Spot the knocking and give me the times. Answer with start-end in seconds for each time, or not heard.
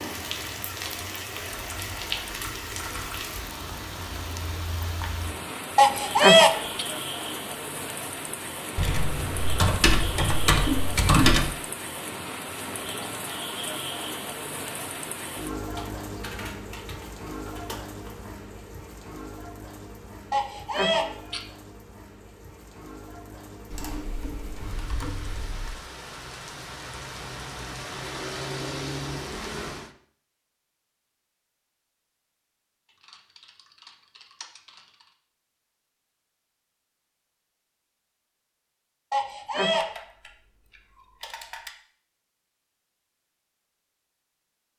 not heard.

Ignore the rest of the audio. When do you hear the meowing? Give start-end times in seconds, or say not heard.
5.8-6.8, 20.3-21.4, 39.1-39.9.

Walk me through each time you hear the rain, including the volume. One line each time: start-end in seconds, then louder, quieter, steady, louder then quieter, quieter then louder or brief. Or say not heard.
0.0-29.9 quieter then louder.